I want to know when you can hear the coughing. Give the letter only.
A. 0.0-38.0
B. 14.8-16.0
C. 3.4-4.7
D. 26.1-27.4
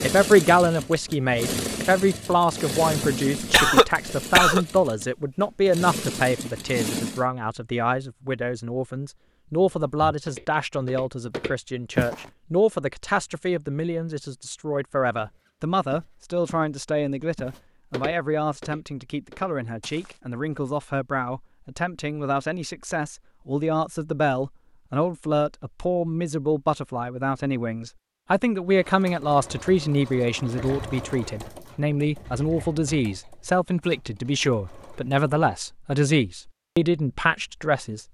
C.